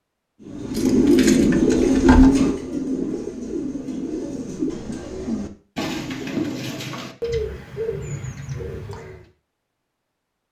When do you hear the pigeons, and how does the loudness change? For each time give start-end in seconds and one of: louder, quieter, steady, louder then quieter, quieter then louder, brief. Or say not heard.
0.5-9.2 quieter.